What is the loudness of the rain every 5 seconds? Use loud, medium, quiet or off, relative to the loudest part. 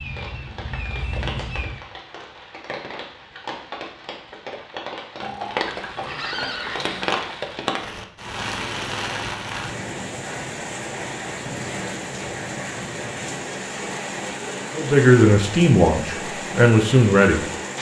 medium, loud, loud, loud.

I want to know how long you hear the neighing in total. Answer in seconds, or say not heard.
2 s.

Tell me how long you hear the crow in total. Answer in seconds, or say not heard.
2 s.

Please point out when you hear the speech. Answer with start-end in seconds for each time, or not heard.
14.8-17.4.